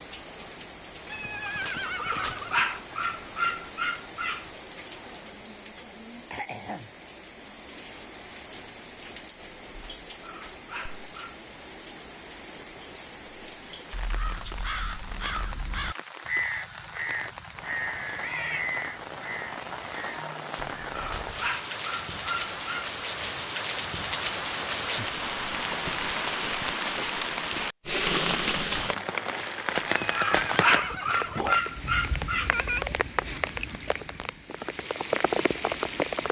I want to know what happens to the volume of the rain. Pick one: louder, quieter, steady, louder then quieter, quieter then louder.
louder.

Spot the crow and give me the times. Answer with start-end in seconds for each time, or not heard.
13.9-21.2.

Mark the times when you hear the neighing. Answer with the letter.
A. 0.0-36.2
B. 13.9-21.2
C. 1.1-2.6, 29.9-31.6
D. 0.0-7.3
C.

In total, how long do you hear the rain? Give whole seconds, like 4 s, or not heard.
36 s.